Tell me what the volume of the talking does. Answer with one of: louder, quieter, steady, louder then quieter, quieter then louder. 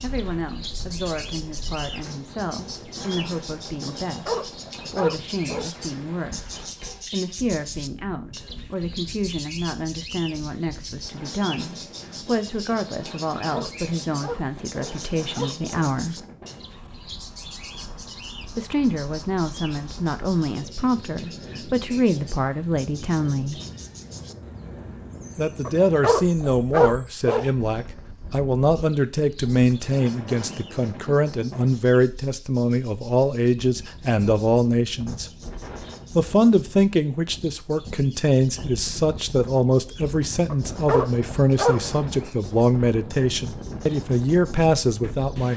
louder.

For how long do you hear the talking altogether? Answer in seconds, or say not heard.
41 s.